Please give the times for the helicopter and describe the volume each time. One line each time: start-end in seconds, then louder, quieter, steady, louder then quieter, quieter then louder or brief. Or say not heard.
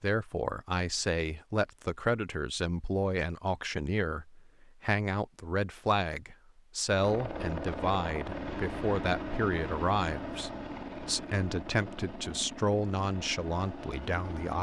6.8-14.5 quieter.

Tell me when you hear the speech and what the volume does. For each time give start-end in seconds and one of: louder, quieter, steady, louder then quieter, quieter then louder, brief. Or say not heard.
0.0-14.5 steady.